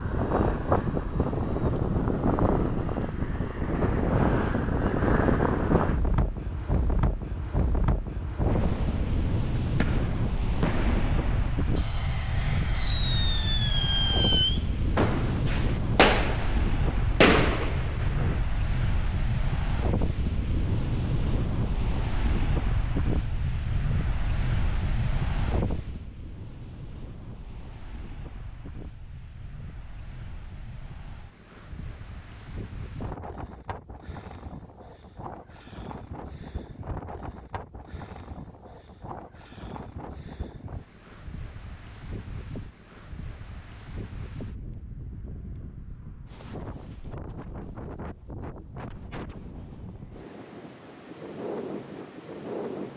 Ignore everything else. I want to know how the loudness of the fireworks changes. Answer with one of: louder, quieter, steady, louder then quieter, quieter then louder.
louder.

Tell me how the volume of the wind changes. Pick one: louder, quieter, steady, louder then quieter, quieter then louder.
quieter.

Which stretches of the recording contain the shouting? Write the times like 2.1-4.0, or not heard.
not heard.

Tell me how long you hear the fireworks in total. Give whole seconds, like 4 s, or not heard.
10 s.